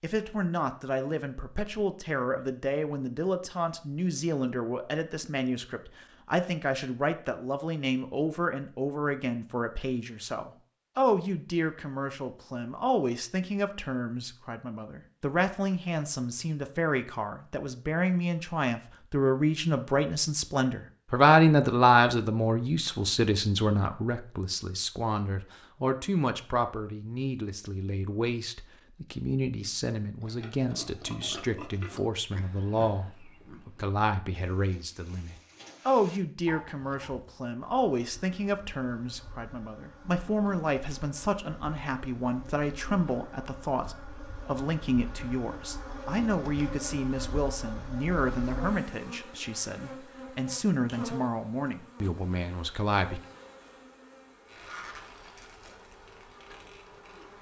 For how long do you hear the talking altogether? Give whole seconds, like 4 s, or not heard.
53 s.